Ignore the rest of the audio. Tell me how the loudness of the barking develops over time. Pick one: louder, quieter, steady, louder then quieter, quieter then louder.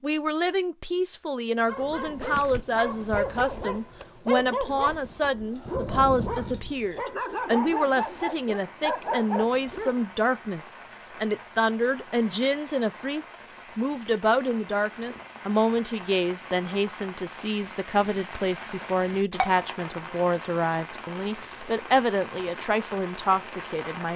steady.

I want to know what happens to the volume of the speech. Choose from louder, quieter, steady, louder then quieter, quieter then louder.
steady.